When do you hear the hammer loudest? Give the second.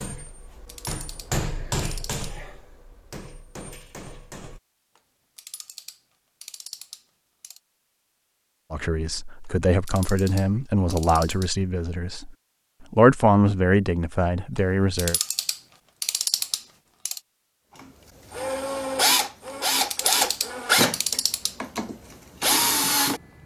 1 s.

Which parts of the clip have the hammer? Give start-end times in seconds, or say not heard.
0.0-4.6.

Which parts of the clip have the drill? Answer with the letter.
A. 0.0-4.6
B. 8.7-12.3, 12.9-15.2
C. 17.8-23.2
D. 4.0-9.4
C.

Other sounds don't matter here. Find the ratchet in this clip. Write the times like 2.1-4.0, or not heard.
0.2-2.2, 5.0-7.6, 9.4-11.6, 14.6-17.2, 19.4-21.6.